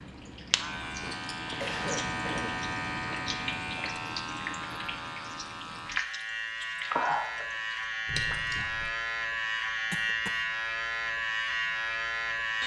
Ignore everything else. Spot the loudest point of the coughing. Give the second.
2 s.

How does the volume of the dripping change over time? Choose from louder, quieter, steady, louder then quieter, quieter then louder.
louder.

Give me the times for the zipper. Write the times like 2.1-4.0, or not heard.
not heard.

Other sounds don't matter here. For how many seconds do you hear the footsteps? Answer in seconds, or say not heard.
not heard.